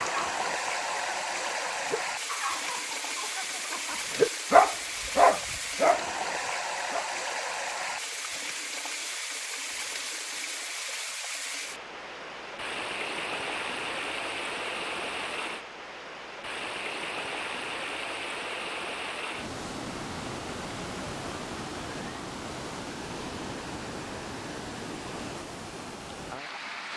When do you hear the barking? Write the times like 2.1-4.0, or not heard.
0.0-7.1.